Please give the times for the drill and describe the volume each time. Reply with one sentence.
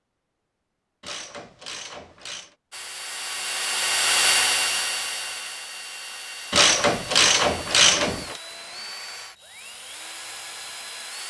The drill can be heard from 2.7 to 11.2 s, getting quieter.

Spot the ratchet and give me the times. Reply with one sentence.
You can hear the ratchet from 1.0 to 2.5 s and from 6.5 to 8.4 s.